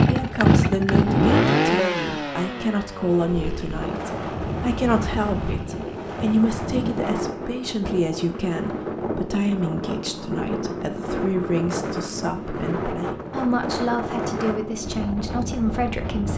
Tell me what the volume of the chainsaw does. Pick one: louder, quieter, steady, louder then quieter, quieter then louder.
quieter.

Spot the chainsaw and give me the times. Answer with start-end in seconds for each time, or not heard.
0.0-6.3.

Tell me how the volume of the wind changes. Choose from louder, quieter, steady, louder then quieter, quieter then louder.
steady.